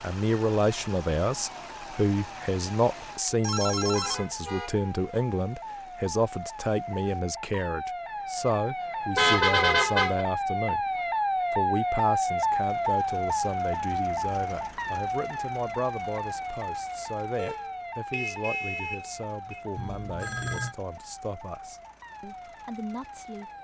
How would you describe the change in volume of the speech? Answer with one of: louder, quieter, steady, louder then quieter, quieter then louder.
quieter.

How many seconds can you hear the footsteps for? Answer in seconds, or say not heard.
not heard.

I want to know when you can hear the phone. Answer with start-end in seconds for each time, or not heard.
3.4-4.2, 19.8-20.8.